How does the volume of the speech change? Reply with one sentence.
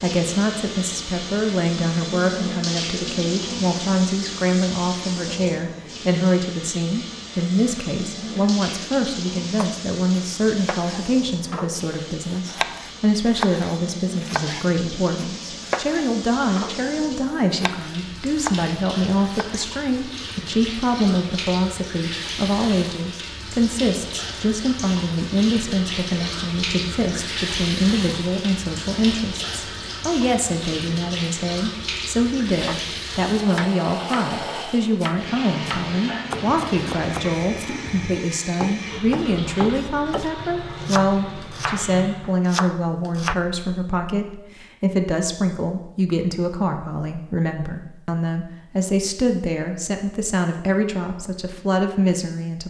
The loudness of the speech stays about the same.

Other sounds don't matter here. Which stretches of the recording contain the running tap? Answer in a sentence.
The running tap can be heard from 0.0 to 42.2 s.